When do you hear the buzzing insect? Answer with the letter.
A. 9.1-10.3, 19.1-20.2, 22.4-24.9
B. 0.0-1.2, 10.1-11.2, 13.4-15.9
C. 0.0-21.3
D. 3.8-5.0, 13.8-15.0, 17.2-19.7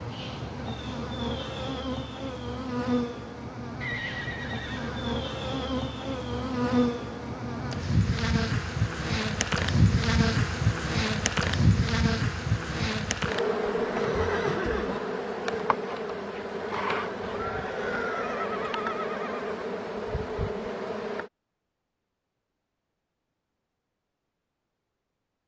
C.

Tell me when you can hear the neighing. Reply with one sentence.
You can hear the neighing from 3.8 to 5.0 s, from 13.8 to 15.0 s and from 17.2 to 19.7 s.